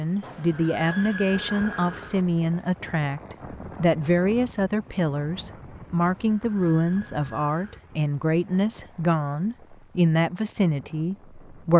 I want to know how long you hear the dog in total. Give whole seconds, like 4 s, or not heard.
not heard.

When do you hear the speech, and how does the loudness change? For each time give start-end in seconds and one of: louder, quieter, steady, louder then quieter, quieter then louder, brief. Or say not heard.
0.0-11.7 steady.